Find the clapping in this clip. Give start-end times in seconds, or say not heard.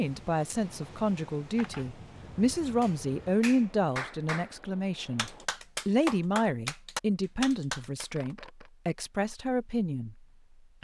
2.8-8.3.